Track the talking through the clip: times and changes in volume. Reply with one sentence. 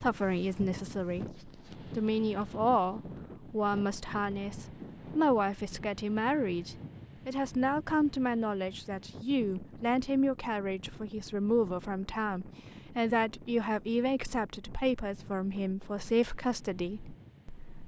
The talking can be heard from 0.0 to 17.8 s, at a steady volume.